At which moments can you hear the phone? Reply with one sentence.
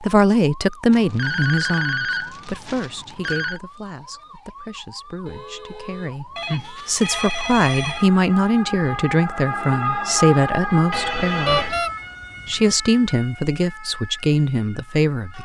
The phone can be heard from 0.9 to 3.6 s, from 6.3 to 8.1 s and from 10.9 to 11.8 s.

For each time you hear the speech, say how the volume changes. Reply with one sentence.
You can hear the speech from 0.0 to 11.7 s, getting quieter then louder; and briefly from 12.4 to 15.4 s.